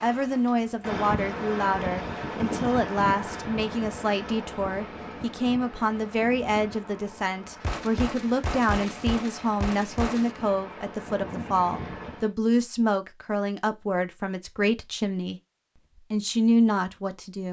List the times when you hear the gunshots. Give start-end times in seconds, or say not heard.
7.6-10.3.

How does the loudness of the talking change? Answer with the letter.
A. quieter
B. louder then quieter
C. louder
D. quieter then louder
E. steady
E.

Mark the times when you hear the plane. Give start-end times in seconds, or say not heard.
0.0-12.3.